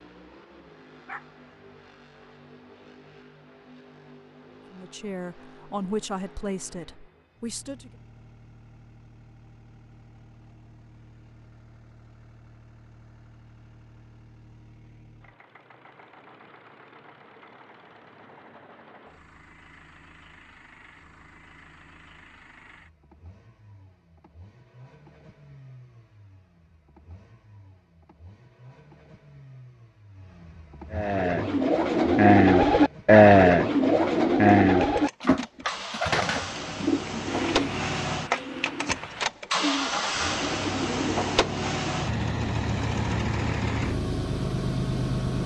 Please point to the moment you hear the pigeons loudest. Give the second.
33 s.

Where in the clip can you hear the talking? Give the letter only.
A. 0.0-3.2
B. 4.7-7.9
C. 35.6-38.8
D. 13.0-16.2
B.